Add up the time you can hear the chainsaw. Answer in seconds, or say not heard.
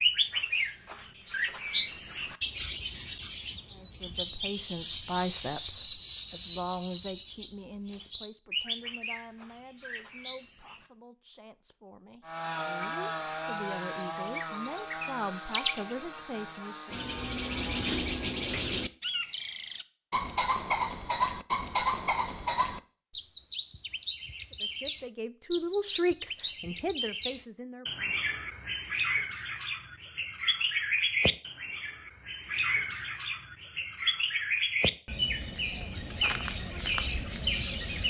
6 s.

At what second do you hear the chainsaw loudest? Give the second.
13 s.